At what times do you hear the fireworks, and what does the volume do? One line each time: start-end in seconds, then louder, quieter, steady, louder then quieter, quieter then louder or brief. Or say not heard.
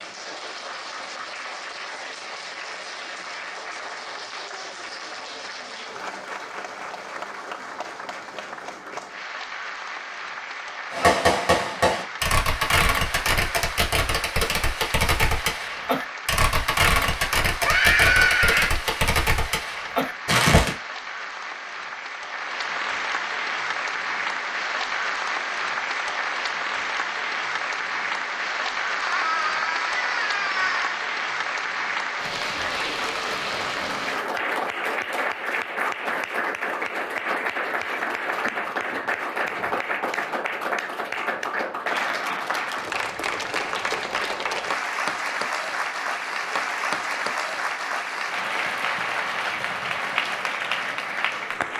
10.9-20.8 steady.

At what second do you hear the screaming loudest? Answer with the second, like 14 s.
18 s.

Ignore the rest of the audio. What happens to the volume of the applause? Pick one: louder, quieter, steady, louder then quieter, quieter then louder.
louder.